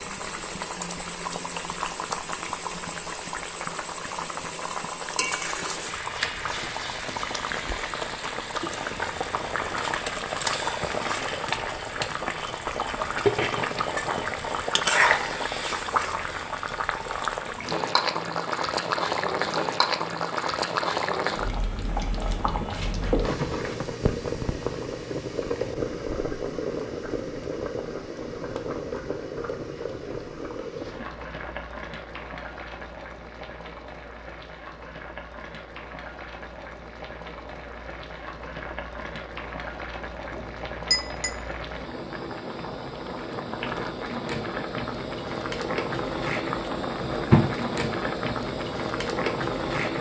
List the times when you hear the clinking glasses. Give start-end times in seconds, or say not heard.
40.3-41.4.